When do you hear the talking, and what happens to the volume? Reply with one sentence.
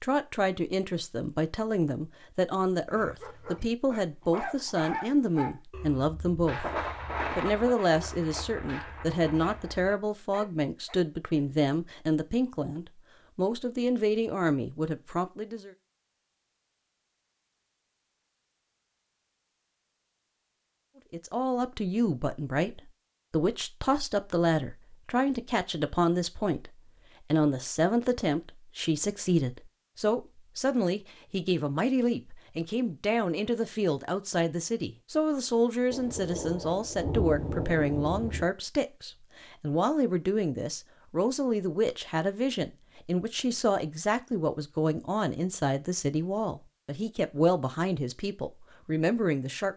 The talking can be heard from 0.0 to 15.7 s, at a steady volume; and from 21.1 to 49.7 s, at a steady volume.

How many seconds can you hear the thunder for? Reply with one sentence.
The thunder can be heard for 6 seconds in total.